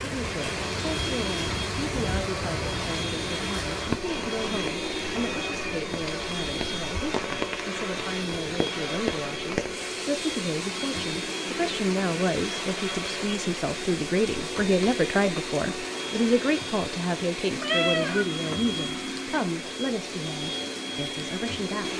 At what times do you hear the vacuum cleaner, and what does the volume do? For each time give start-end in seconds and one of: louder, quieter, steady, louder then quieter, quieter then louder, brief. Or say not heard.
0.1-21.9 steady.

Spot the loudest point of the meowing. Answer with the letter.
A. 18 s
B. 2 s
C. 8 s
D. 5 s
A.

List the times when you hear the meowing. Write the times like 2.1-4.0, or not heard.
4.1-6.0, 17.6-18.2.